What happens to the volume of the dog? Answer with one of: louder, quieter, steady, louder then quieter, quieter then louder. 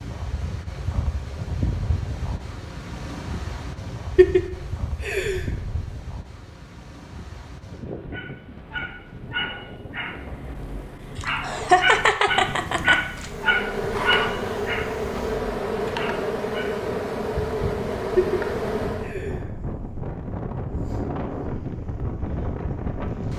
louder then quieter.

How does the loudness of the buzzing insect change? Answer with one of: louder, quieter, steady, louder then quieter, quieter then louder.
steady.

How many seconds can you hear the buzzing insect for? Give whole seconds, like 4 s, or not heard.
6 s.